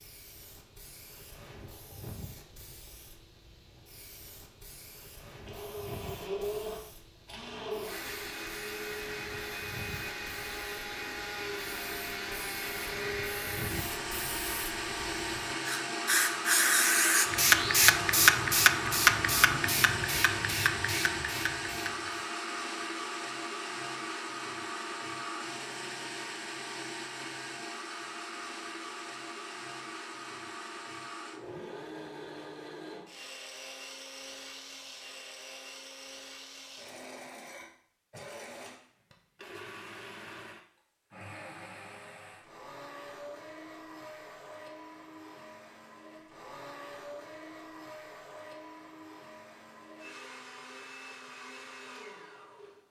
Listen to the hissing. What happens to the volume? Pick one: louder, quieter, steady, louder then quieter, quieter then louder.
louder.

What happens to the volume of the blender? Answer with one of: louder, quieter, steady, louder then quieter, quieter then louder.
quieter.